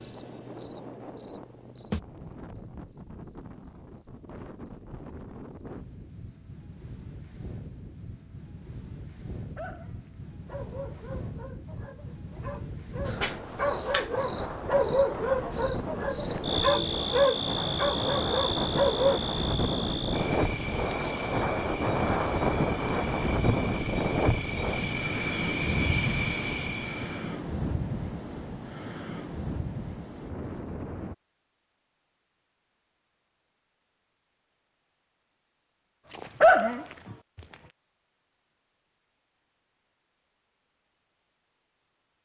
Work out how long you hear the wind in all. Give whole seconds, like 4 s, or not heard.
31 s.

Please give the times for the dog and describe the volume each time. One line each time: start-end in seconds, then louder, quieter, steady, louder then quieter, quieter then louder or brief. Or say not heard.
9.6-19.2 louder
36.1-37.1 brief.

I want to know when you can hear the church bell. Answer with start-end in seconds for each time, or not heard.
not heard.